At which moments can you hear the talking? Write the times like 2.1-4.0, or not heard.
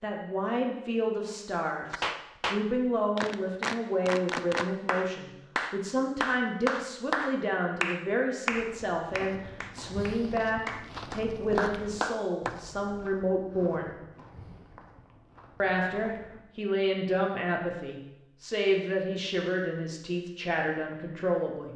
0.0-13.9, 15.6-21.7.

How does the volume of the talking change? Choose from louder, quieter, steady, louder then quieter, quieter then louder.
steady.